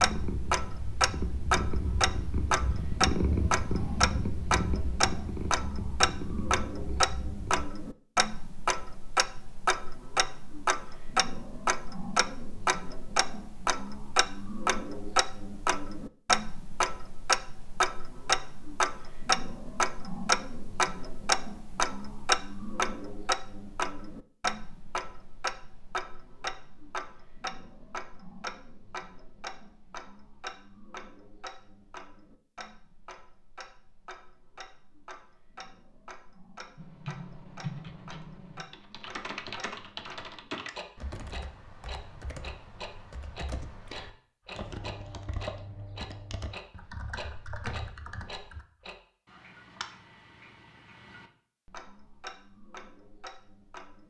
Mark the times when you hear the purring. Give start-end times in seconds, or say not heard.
0.0-7.7.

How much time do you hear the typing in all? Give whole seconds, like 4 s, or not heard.
12 s.